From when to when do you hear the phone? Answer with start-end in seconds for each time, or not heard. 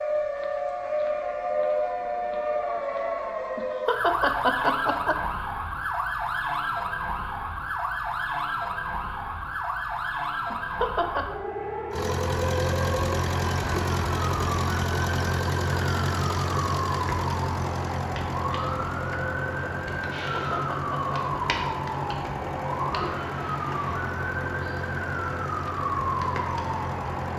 not heard.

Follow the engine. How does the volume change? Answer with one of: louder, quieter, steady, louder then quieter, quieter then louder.
quieter.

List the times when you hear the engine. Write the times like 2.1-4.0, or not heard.
11.9-27.3.